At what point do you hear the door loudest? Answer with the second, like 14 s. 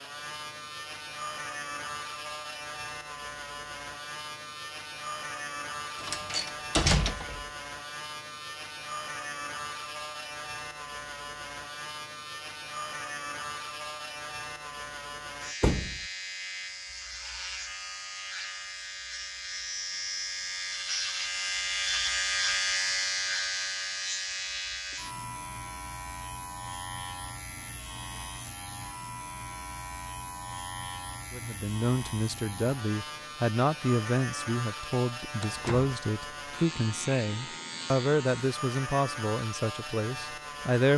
7 s.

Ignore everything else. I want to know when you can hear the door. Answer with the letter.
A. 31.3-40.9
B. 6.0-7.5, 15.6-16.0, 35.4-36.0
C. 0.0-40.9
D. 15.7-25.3
B.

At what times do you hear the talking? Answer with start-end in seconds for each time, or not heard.
31.3-40.9.